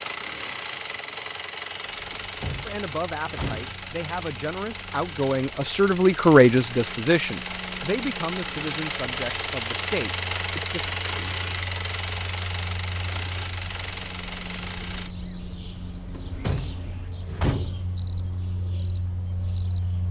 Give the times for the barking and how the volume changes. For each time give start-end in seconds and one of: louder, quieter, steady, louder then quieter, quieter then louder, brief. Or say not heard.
not heard.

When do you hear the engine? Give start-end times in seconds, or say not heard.
0.0-15.2.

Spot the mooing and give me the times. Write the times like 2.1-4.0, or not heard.
not heard.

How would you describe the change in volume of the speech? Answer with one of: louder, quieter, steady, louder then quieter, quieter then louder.
louder then quieter.